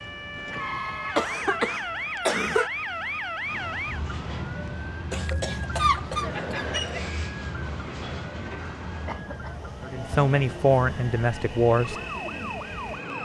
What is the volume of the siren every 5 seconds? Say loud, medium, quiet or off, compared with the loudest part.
loud, medium, loud.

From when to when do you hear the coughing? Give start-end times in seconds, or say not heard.
1.1-2.7, 5.1-7.1, 9.1-10.2.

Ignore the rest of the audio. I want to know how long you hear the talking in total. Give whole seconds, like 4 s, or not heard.
2 s.